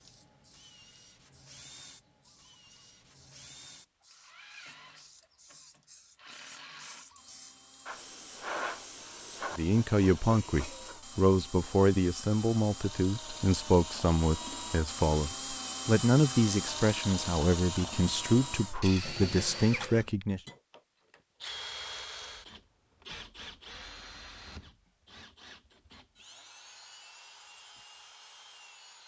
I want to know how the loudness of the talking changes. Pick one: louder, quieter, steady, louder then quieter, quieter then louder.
steady.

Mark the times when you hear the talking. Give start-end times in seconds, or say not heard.
9.6-20.4.